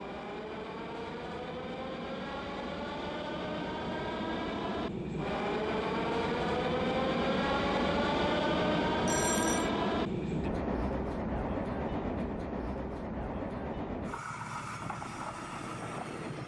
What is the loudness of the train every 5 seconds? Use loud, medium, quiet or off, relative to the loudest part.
medium, loud, medium, medium.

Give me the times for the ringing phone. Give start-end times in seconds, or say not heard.
9.1-9.7.